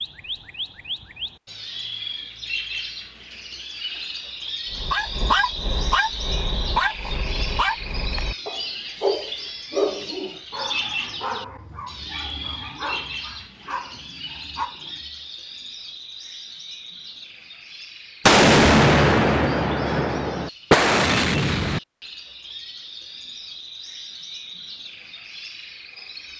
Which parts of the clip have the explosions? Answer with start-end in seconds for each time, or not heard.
18.2-21.8.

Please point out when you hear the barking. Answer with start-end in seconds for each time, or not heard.
4.7-15.2.